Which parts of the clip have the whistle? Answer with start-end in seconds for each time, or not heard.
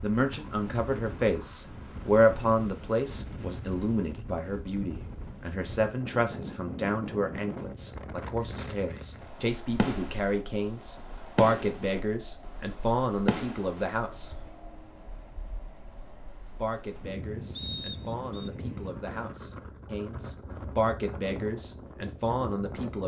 17.6-18.5.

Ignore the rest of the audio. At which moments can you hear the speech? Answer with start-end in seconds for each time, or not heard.
0.0-14.3, 16.6-23.0.